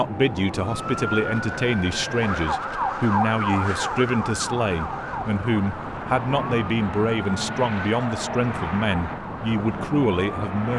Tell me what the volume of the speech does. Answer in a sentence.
The volume of the speech stays about the same.